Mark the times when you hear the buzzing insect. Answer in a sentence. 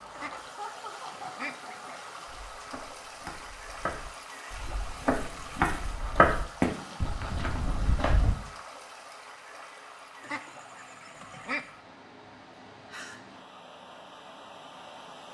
You can't hear the buzzing insect here.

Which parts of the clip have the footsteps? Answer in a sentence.
You can hear the footsteps from 2.2 to 8.3 s.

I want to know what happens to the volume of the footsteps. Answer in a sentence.
The volume of the footsteps goes up, then down.